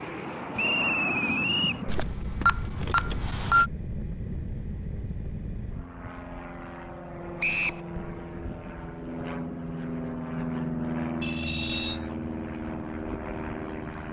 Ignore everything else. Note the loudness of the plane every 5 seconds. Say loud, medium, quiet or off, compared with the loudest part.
loud, medium, loud.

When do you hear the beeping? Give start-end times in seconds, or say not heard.
1.9-3.7, 11.2-12.0.